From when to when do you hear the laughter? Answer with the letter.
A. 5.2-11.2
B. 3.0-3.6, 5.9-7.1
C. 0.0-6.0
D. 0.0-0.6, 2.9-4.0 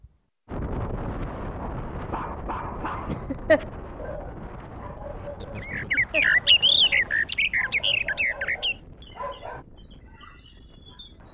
B.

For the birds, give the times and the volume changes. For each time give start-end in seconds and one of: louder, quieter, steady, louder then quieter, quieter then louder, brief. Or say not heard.
5.2-11.2 quieter.